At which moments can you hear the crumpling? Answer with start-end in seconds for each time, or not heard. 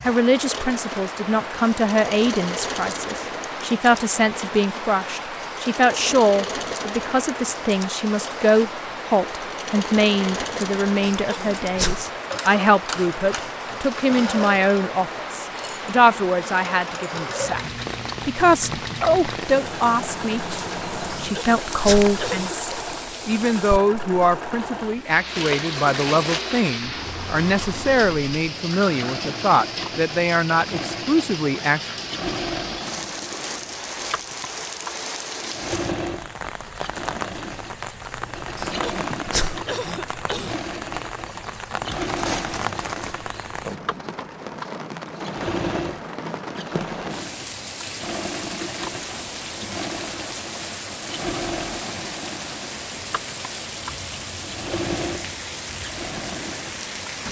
25.4-26.4, 41.9-43.2.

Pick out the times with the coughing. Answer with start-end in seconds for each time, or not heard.
11.0-12.2, 21.1-22.6, 38.5-40.6.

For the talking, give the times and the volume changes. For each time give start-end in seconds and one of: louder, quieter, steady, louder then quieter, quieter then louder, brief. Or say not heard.
0.0-17.6 steady
18.2-31.8 steady.